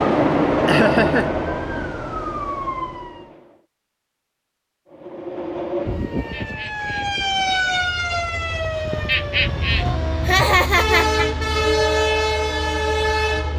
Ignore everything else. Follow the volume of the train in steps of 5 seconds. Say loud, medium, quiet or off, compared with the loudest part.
loud, medium, loud.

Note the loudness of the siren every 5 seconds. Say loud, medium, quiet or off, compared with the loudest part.
medium, loud, medium.